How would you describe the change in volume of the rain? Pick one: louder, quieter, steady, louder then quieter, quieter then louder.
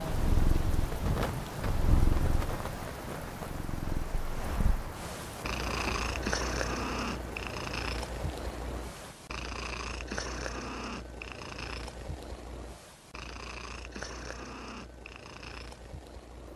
quieter.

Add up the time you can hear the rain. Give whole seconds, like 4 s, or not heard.
9 s.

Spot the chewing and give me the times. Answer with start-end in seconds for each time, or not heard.
not heard.